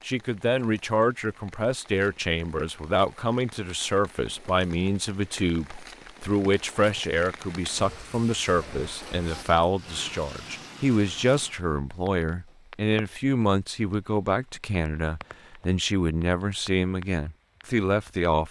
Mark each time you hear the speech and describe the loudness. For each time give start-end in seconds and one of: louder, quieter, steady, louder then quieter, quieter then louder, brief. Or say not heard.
0.0-18.4 steady.